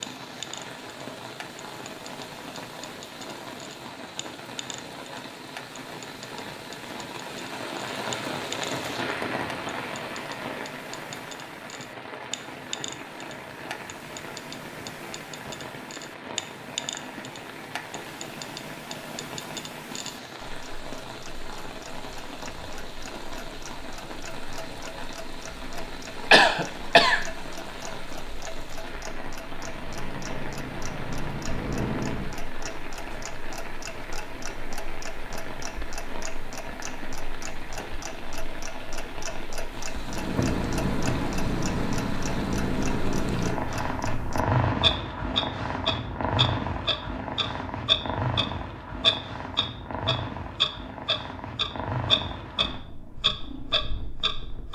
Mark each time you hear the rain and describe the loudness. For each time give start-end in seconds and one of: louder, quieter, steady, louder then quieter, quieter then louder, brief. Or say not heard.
0.0-43.5 steady.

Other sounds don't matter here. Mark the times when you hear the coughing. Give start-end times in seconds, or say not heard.
26.3-27.2.